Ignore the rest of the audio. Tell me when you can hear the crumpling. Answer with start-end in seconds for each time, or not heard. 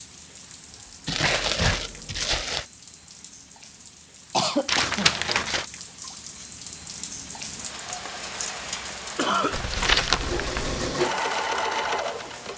1.1-2.6, 4.7-5.7, 9.5-10.9.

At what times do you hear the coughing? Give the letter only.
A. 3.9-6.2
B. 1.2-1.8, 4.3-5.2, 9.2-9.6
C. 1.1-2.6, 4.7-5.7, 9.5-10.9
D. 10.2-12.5
B.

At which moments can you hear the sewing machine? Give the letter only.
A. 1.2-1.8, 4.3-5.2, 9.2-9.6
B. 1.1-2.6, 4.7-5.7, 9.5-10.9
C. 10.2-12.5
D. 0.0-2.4
C.